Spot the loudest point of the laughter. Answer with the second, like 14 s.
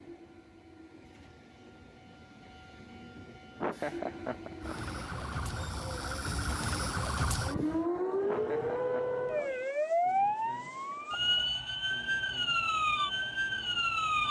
4 s.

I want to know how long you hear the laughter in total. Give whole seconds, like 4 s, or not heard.
2 s.